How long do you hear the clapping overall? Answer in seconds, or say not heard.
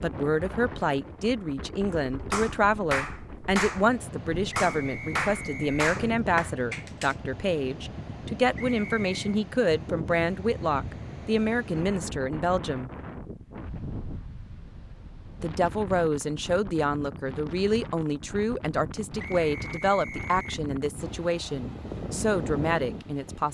5 s.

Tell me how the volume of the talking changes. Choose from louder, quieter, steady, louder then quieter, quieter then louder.
steady.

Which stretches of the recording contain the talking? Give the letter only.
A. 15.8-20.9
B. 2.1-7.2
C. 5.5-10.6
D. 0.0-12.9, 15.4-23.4
D.